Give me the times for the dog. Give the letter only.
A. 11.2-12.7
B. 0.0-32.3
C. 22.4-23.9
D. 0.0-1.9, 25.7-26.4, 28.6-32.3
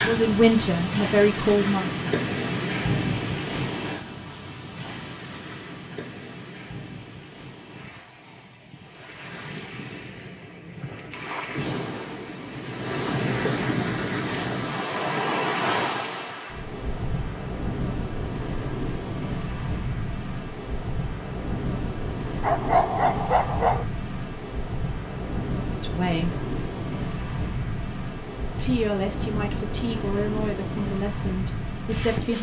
C.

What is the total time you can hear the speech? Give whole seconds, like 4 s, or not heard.
6 s.